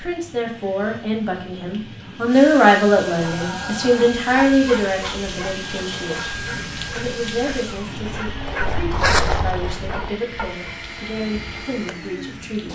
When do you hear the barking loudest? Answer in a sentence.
The volume of the barking peaks at 9 seconds.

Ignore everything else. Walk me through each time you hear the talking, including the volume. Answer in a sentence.
You can hear the talking from 0.0 to 12.7 s, getting quieter.